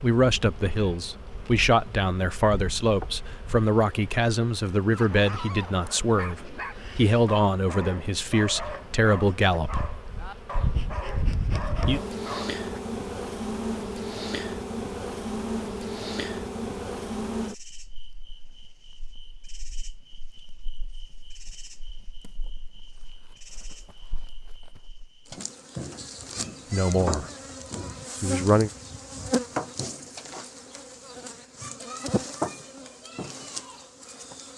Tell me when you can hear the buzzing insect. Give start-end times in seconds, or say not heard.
0.0-34.5.